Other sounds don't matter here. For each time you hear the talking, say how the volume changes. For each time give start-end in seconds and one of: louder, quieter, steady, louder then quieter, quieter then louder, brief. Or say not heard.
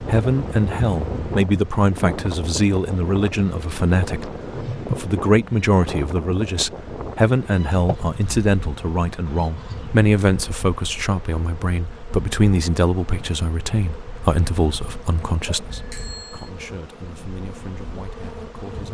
0.0-18.9 quieter.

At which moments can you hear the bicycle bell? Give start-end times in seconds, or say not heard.
15.4-16.5.